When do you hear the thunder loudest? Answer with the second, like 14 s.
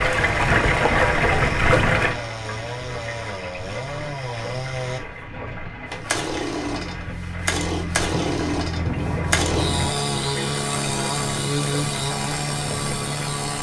9 s.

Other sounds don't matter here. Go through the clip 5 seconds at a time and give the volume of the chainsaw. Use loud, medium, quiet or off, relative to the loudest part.
medium, loud, loud.